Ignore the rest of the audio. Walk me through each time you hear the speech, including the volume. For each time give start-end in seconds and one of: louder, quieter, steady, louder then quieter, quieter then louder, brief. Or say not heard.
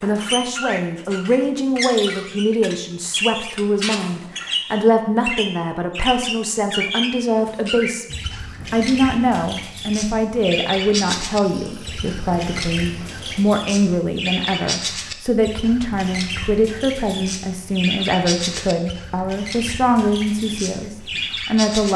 0.0-21.9 steady.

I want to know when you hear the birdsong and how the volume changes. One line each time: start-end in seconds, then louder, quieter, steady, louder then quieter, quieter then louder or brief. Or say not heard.
0.0-21.9 steady.